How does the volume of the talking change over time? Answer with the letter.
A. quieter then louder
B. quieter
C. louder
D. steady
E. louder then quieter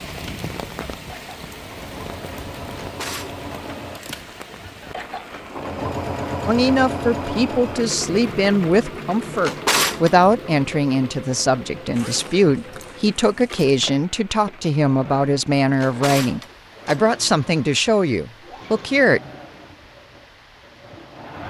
D.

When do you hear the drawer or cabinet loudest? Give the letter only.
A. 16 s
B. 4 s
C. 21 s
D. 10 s
D.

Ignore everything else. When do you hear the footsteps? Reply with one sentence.
You can't hear the footsteps here.